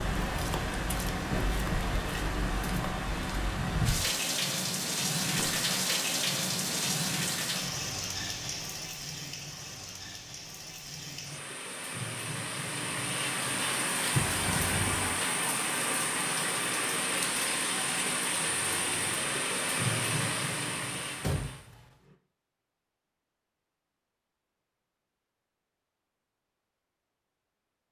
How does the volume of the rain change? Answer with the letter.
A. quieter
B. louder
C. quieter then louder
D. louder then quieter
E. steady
C.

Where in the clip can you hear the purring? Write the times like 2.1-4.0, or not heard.
not heard.